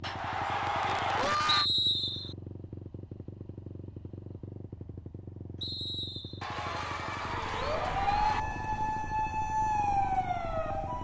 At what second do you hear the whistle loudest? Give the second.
2 s.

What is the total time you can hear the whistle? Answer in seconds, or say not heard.
2 s.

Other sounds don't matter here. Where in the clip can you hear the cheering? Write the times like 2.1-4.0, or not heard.
0.0-1.6, 6.4-8.4.